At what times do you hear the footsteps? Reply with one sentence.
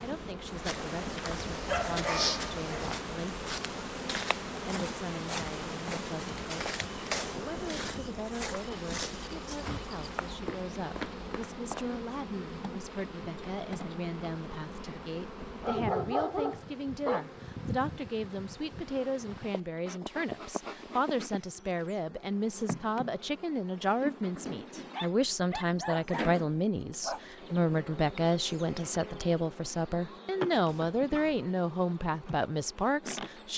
The footsteps can be heard from 0.6 to 11.8 s.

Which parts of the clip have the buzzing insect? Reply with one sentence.
The buzzing insect can be heard from 0.0 to 33.5 s.